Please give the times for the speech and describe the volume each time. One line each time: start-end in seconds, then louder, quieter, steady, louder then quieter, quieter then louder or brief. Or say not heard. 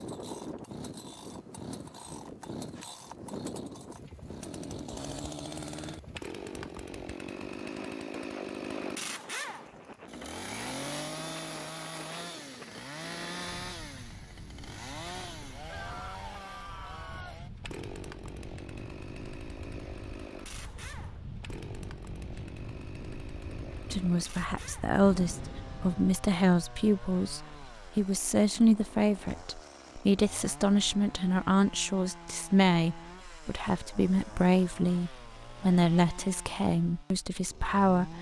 23.9-38.1 steady.